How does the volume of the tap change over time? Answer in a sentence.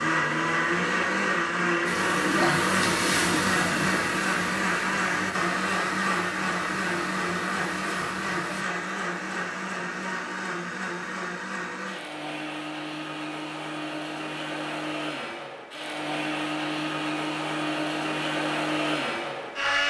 The volume of the tap goes down.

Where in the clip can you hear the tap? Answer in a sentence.
You can hear the tap from 1.9 to 8.7 s.